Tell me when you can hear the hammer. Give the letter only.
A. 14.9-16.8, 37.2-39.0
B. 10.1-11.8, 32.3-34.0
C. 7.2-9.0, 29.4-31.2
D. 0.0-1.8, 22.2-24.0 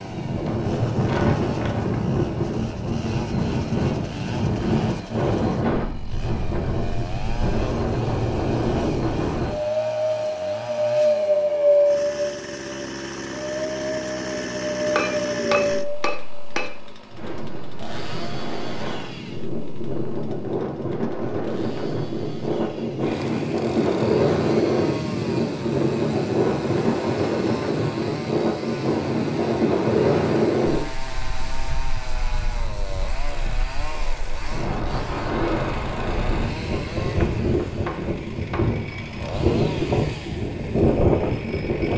A.